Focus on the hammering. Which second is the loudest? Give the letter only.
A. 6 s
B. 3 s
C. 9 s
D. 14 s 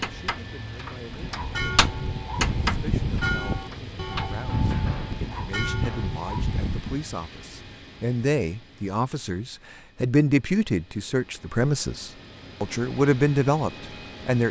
B.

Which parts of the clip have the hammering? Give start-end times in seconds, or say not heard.
0.0-6.1.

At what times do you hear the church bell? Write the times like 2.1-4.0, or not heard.
1.1-7.0.